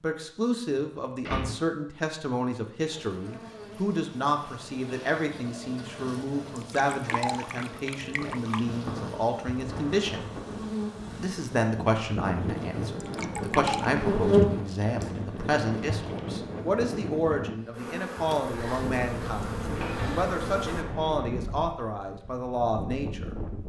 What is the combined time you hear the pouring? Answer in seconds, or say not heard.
3 s.